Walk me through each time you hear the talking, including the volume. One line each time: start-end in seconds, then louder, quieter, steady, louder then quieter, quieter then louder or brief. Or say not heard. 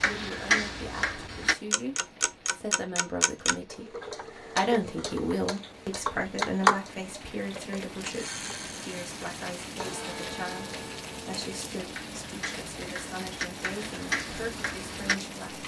0.0-15.6 louder then quieter.